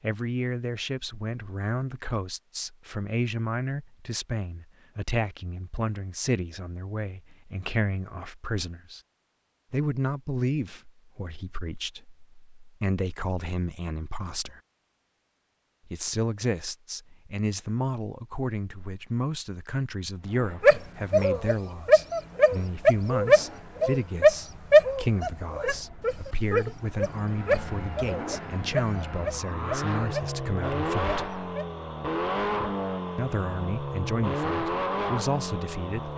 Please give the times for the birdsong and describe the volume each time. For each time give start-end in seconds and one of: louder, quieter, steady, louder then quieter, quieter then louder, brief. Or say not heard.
not heard.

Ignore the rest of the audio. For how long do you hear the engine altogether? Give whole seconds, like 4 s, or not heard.
16 s.